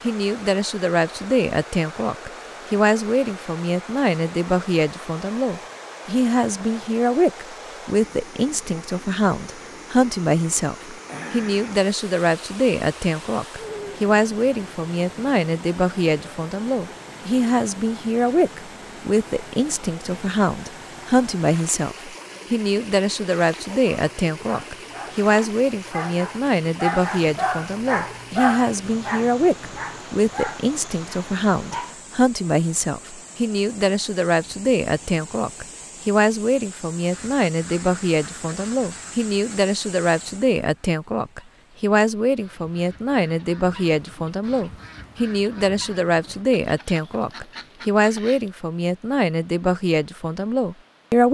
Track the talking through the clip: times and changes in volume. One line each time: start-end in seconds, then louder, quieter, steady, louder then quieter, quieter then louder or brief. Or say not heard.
0.0-51.2 steady.